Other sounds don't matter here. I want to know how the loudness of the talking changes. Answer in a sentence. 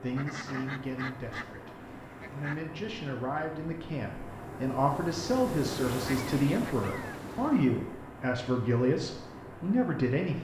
The volume of the talking goes up.